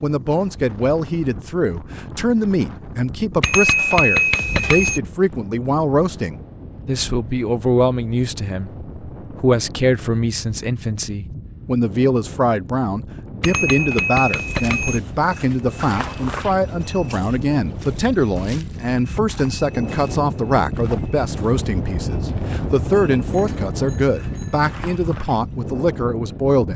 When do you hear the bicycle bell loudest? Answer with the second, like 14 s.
4 s.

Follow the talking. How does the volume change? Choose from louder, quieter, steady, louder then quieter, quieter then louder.
steady.